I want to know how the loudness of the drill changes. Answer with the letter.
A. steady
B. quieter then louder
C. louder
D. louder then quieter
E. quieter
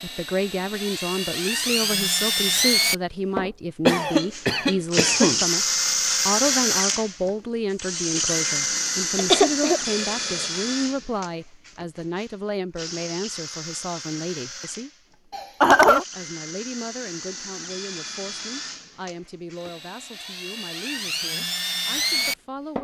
B.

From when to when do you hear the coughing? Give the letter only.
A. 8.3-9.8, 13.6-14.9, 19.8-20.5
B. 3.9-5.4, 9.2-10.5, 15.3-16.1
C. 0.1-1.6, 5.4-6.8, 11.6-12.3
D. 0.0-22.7
B.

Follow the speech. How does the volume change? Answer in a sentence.
The volume of the speech goes down.